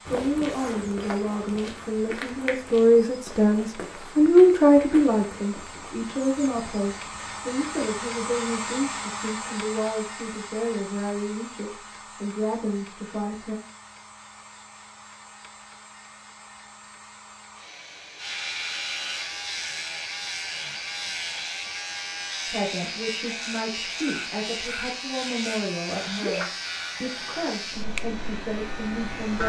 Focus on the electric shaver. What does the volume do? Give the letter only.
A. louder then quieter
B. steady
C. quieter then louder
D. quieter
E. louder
B.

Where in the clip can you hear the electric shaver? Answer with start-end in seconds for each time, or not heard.
18.1-29.4.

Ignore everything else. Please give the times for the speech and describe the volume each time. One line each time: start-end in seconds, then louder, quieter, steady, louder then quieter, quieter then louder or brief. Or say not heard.
0.0-13.6 louder then quieter
22.4-29.4 steady.